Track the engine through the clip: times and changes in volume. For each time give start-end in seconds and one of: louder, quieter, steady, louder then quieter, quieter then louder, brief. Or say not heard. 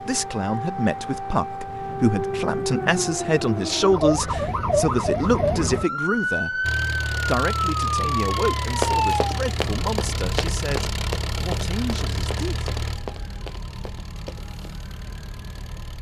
6.6-15.9 quieter.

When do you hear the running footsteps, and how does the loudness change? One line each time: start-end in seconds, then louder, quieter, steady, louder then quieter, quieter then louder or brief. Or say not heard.
8.8-14.7 quieter.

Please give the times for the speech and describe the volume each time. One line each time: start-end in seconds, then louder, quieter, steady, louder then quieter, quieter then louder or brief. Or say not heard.
0.0-12.7 quieter.